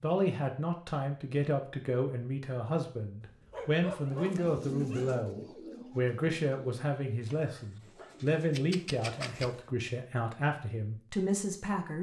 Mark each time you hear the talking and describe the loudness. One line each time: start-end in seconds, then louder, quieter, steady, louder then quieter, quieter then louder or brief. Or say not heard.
0.0-11.9 steady.